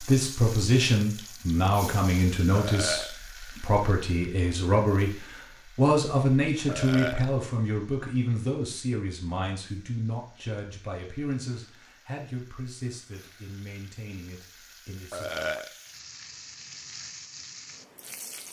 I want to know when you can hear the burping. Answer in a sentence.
You can hear the burping from 2.5 to 3.1 s, from 6.7 to 7.3 s and from 15.1 to 15.8 s.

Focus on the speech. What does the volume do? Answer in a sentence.
The volume of the speech goes down.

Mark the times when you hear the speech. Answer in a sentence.
The speech can be heard from 0.0 to 15.3 s.